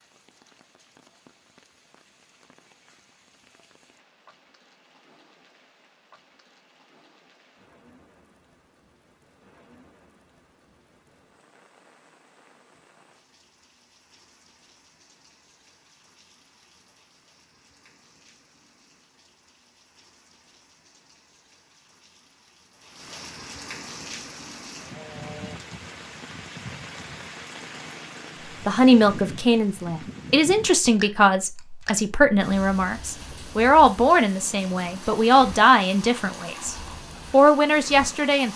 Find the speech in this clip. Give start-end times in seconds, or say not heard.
28.6-38.5.